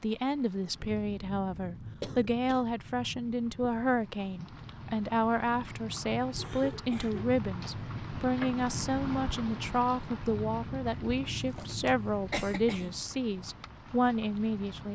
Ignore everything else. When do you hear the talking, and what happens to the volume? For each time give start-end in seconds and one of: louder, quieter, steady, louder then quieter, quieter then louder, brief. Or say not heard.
0.0-14.9 steady.